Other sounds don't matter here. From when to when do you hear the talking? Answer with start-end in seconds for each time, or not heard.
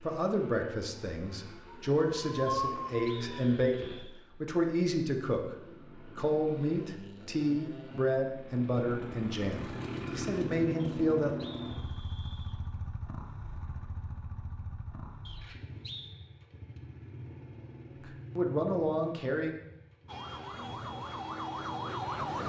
0.0-5.5, 6.2-11.4, 18.4-19.6.